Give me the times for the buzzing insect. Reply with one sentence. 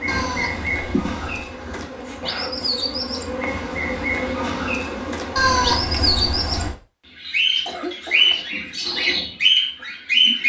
You can hear the buzzing insect from 0.0 to 6.0 s.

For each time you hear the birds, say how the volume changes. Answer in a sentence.
The birds can be heard from 0.0 to 10.4 s, getting louder.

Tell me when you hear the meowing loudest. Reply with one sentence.
The loudest moment of the meowing is at 6 seconds.